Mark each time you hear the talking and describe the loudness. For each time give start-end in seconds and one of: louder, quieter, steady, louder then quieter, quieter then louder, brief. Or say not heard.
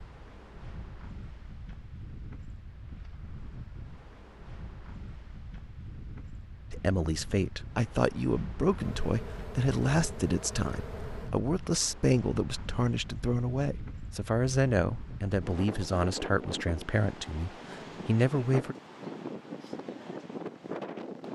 6.7-18.8 steady.